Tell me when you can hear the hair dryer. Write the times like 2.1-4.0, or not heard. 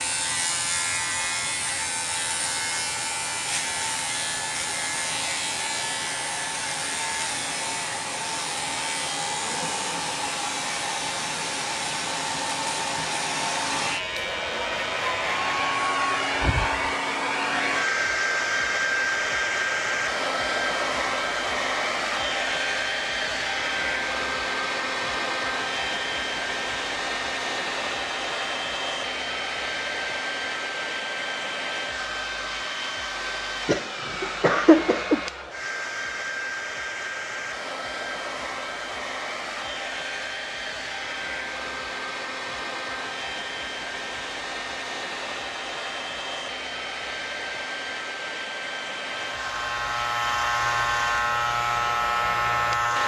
0.0-53.0.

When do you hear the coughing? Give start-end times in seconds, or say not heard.
33.6-35.2.